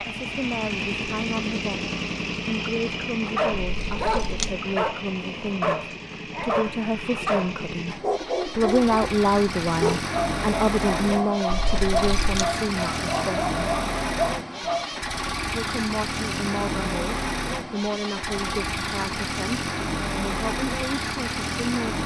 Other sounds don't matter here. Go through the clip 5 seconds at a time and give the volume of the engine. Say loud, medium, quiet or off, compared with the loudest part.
loud, medium, loud, loud, loud.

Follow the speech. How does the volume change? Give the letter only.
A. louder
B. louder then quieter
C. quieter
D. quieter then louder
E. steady
B.